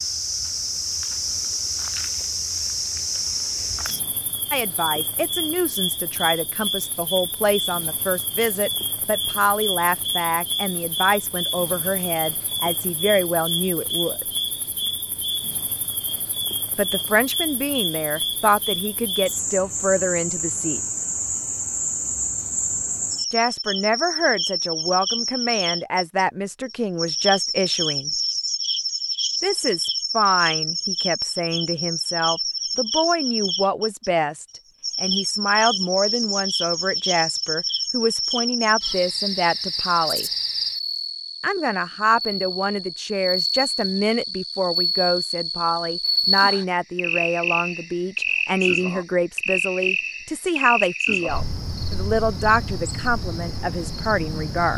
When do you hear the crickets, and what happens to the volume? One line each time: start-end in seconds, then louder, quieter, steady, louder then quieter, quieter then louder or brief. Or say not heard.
0.0-54.7 steady.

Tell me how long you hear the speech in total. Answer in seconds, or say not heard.
43 s.